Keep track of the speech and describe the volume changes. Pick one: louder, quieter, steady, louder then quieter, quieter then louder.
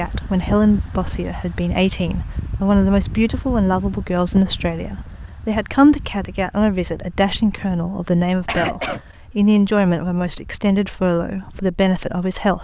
steady.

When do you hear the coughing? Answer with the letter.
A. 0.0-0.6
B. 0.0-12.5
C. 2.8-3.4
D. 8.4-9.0
D.